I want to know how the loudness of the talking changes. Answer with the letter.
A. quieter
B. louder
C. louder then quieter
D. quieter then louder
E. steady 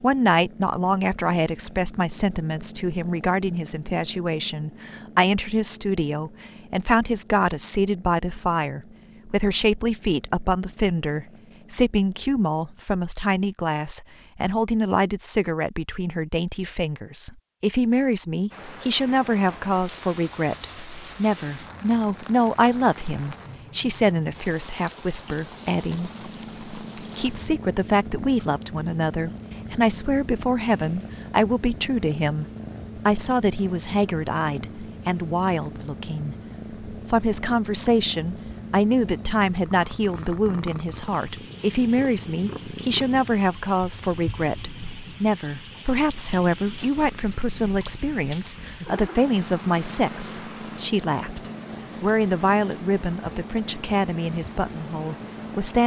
E.